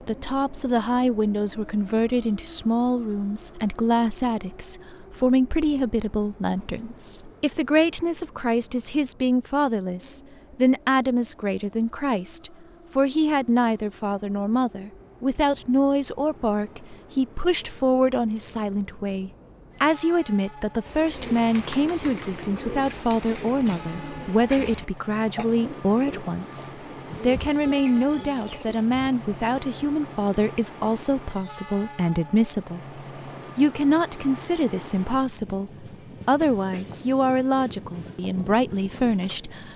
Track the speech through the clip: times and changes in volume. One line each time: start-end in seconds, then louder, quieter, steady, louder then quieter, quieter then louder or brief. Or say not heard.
0.1-39.7 steady.